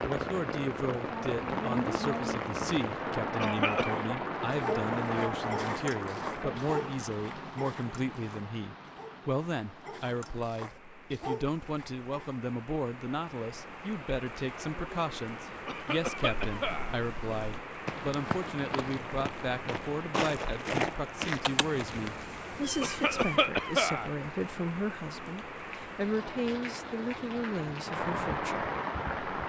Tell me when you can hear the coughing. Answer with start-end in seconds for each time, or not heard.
3.4-4.0, 15.7-16.9, 22.8-24.1.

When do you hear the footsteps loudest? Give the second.
21 s.